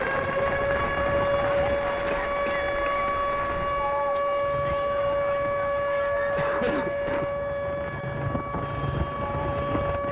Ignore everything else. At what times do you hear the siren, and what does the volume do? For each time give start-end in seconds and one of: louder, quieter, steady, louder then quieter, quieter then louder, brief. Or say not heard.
0.0-10.0 quieter.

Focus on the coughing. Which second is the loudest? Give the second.
7 s.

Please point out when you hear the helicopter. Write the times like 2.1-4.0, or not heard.
0.0-2.0, 4.3-10.0.